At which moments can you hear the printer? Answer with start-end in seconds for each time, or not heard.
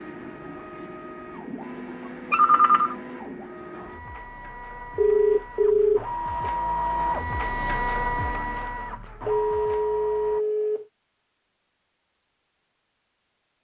0.0-10.4.